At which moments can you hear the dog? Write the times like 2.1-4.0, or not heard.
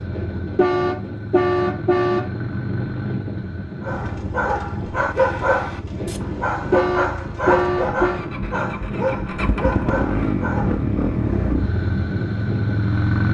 3.8-10.8.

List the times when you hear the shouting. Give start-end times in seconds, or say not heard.
not heard.